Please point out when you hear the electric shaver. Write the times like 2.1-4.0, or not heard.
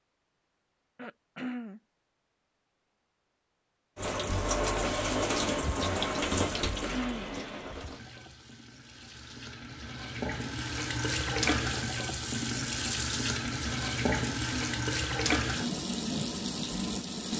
not heard.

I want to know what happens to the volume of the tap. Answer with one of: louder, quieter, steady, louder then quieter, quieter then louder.
quieter then louder.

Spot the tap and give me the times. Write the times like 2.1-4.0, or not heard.
4.0-17.3.